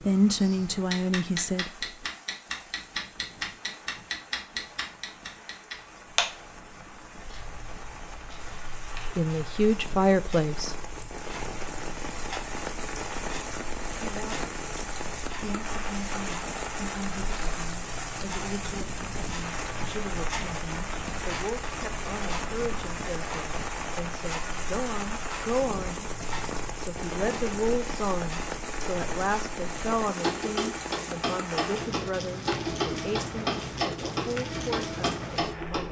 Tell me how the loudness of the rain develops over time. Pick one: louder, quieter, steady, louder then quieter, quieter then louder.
louder.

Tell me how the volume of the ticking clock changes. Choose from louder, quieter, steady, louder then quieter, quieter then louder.
quieter then louder.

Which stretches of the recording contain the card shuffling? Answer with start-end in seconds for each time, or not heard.
not heard.